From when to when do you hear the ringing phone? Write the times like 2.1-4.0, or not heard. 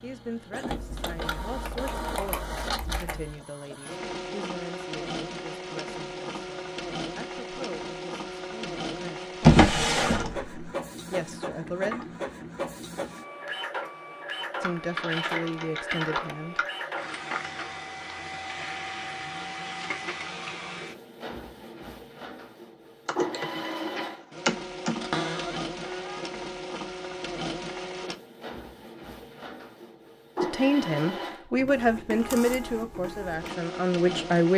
not heard.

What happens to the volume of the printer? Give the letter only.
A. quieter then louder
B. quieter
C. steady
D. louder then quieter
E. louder
C.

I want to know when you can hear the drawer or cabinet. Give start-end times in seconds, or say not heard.
9.4-10.7, 25.0-26.2.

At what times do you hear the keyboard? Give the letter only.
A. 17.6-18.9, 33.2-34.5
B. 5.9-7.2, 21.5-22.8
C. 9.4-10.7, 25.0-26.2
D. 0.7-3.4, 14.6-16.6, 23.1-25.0
D.